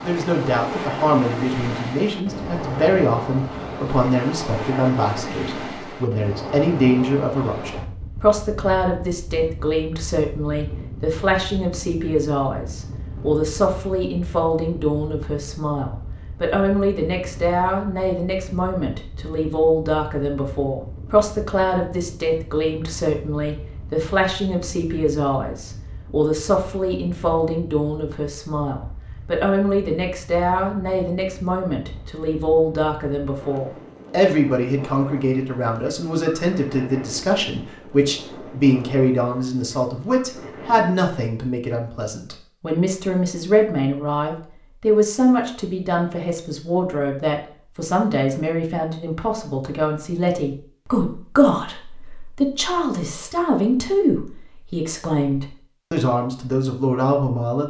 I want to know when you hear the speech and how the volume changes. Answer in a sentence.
The speech can be heard from 0.0 to 57.6 s, at a steady volume.